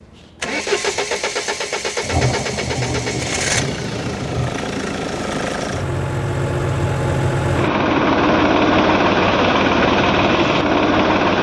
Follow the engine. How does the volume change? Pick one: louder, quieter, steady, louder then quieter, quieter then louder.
louder.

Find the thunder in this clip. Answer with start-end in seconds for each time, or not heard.
2.0-4.6.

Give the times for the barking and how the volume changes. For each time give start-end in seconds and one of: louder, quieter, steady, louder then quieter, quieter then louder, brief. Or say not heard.
not heard.